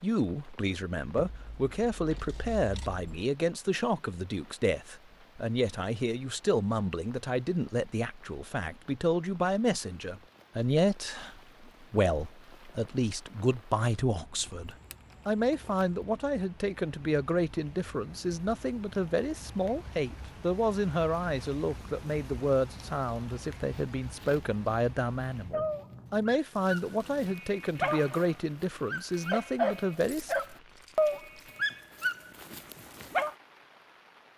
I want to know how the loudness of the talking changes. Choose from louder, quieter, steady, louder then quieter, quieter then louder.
steady.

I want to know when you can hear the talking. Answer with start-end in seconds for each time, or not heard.
0.0-30.4.